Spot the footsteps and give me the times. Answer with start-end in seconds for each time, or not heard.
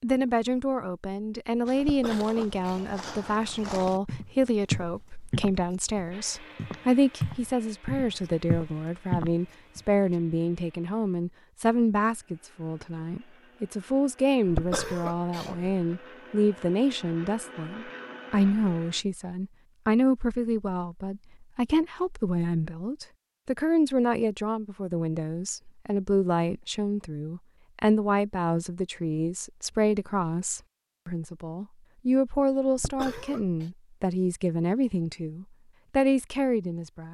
1.6-10.2.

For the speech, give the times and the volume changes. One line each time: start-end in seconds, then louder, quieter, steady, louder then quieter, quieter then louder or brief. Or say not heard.
0.0-37.0 steady.